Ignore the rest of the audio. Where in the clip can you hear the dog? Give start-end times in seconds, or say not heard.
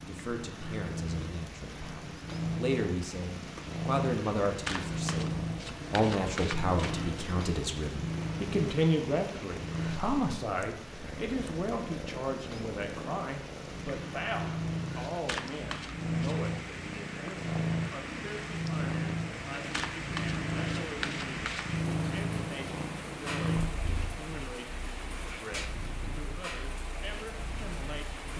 not heard.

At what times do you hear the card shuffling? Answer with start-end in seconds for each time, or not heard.
4.7-7.0, 15.2-16.4, 19.7-21.6.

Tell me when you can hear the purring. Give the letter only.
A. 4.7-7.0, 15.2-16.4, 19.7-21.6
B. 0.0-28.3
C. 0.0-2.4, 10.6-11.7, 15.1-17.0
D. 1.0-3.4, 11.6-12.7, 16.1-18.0
B.